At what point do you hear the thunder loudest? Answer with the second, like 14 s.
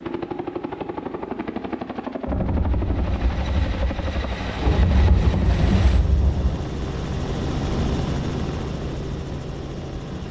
6 s.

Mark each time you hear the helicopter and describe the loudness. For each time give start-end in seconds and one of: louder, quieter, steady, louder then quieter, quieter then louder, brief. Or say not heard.
0.0-10.2 steady.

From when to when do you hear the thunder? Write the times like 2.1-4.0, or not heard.
2.2-6.6.